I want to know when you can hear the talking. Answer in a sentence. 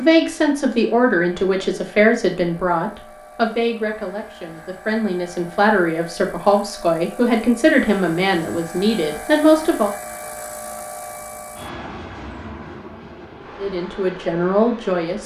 The talking can be heard from 0.0 to 9.9 s and from 13.6 to 15.2 s.